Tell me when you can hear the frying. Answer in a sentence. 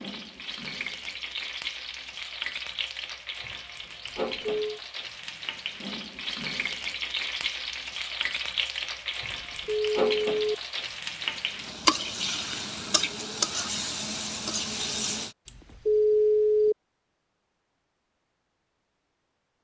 The frying can be heard from 0.0 to 15.3 s.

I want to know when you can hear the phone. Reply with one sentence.
You can hear the phone from 4.0 to 4.8 s, from 9.6 to 10.6 s and from 15.4 to 16.8 s.